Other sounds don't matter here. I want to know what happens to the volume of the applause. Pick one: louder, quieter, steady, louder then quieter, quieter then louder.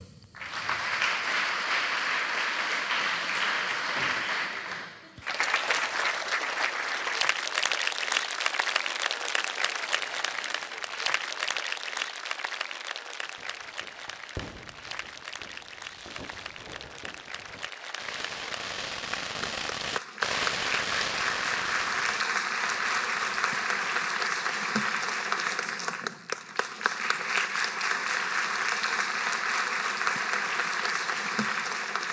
quieter then louder.